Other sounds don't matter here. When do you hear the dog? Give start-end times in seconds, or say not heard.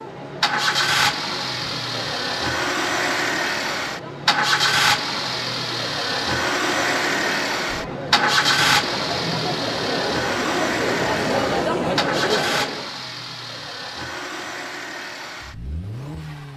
not heard.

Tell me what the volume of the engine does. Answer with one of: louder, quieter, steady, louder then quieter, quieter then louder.
quieter.